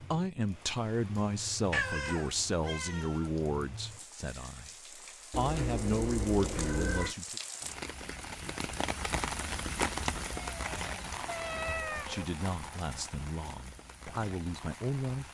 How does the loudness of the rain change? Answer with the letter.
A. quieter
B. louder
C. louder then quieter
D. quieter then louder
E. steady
C.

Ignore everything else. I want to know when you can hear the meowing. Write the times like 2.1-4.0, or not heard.
1.7-3.3, 5.3-7.2, 10.3-12.2.